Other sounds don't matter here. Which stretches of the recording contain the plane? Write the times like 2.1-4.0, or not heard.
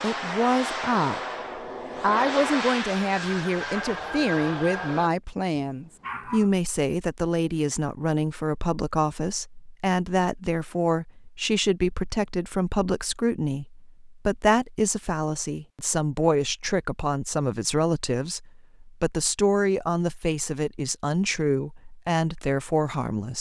0.0-5.1.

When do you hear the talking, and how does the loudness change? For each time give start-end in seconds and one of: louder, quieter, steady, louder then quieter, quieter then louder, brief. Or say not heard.
0.0-1.2 brief
2.0-23.3 steady.